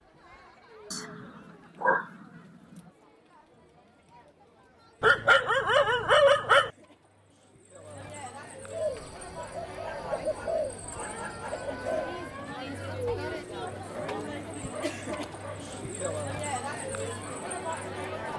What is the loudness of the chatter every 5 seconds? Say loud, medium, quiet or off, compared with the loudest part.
quiet, medium, loud, loud.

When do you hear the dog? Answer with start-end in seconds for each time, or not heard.
0.9-2.1, 5.0-6.7, 9.8-11.7, 13.8-15.8.